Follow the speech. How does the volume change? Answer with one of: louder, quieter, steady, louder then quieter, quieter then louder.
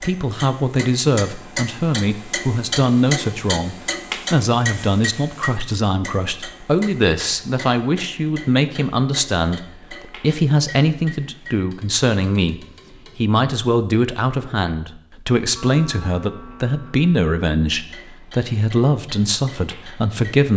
steady.